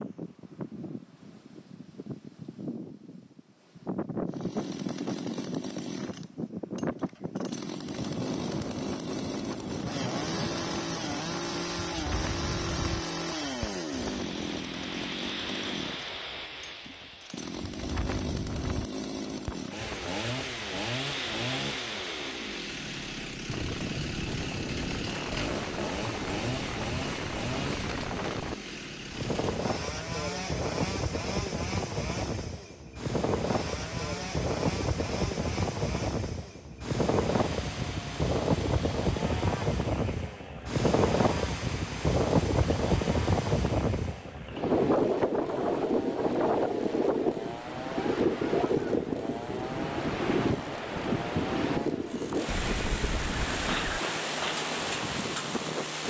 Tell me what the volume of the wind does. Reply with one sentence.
The volume of the wind goes up.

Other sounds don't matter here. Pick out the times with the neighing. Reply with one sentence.
You can hear the neighing from 52.5 to 54.0 s.